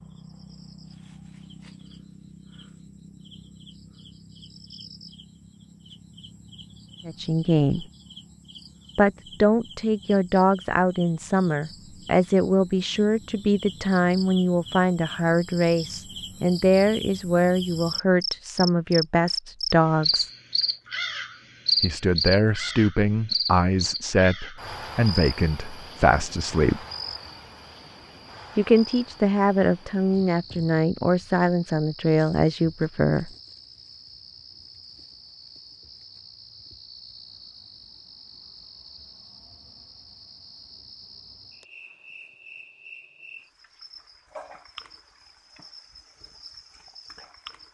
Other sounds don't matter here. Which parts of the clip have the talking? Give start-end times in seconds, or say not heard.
7.0-7.8, 8.9-20.3, 21.8-26.8, 28.6-33.3.